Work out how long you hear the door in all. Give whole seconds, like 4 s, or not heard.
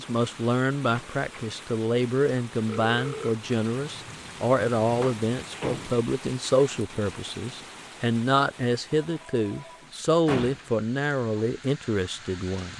3 s.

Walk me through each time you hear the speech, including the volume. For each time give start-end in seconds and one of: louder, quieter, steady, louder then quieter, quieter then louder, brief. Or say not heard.
0.0-12.7 steady.